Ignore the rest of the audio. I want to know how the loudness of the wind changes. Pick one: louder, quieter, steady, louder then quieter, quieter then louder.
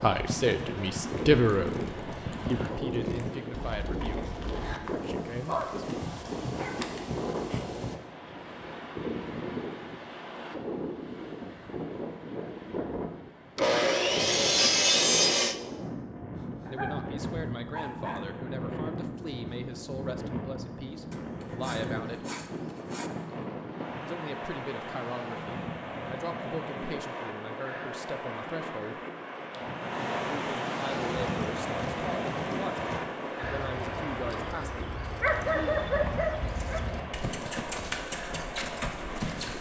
steady.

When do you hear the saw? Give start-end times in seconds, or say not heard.
13.6-15.6, 21.1-23.1.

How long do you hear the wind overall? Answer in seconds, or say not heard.
39 s.